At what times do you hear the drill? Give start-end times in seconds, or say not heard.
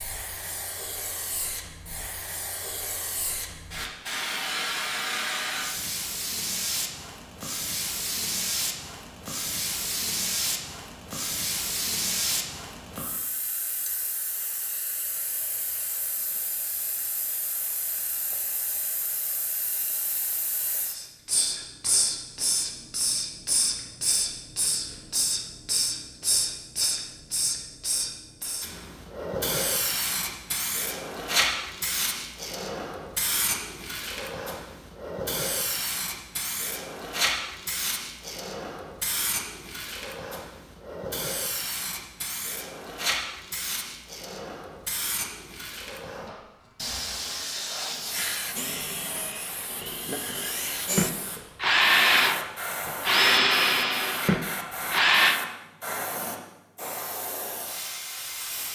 48.1-55.4.